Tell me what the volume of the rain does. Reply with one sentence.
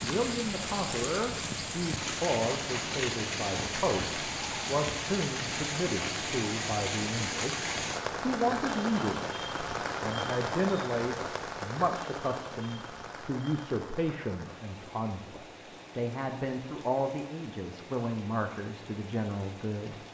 The loudness of the rain goes down.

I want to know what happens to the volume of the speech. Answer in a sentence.
The loudness of the speech stays about the same.